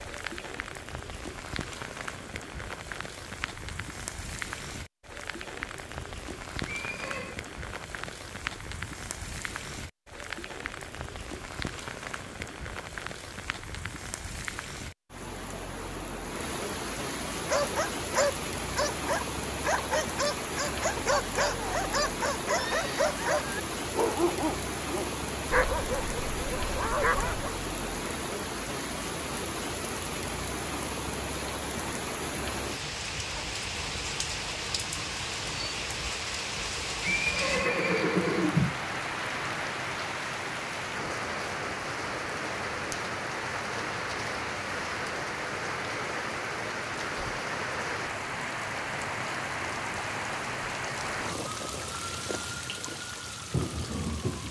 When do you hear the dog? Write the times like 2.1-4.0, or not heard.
17.4-27.5.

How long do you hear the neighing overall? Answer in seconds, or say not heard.
3 s.